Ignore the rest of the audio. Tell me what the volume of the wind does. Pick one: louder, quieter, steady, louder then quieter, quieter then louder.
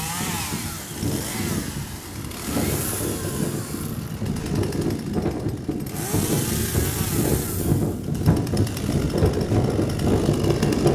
louder.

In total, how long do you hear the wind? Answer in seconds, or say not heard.
11 s.